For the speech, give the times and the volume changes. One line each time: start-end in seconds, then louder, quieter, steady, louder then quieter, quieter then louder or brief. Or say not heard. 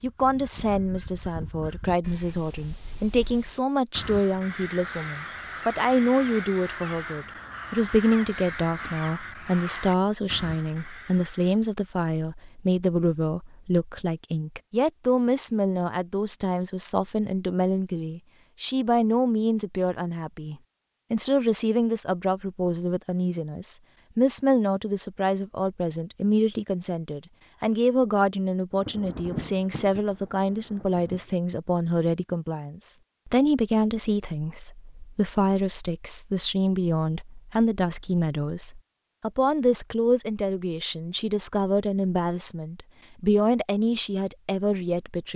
0.0-45.3 steady.